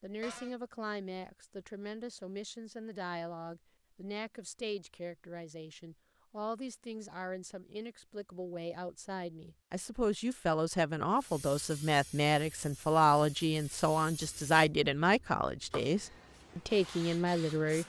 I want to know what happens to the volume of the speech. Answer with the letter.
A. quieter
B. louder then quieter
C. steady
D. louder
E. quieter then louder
D.